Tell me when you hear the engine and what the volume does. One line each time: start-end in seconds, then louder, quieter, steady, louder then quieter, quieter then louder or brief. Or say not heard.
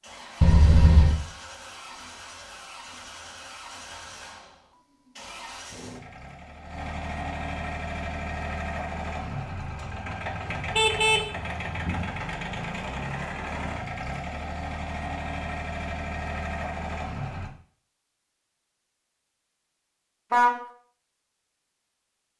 0.0-17.6 louder.